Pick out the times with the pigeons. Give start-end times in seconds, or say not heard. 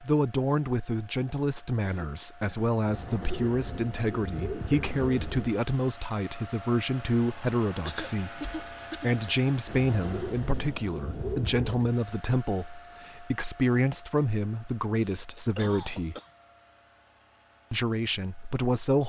2.9-5.6, 9.7-11.9.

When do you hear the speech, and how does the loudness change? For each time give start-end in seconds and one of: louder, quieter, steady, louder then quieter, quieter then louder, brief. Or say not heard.
0.0-16.1 steady
17.7-19.0 brief.